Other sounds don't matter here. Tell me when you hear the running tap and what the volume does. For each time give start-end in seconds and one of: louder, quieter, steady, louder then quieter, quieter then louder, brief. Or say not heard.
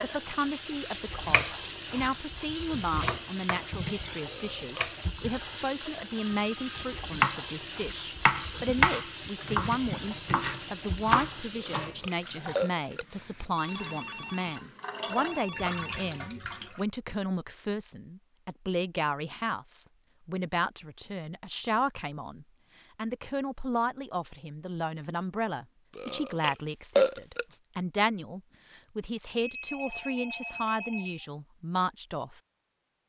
0.0-16.9 steady.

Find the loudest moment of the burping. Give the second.
27 s.